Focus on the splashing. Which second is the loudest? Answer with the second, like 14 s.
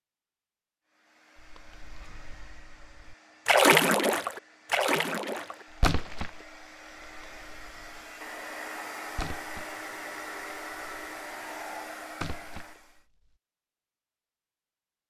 4 s.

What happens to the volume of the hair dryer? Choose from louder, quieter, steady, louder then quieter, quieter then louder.
louder.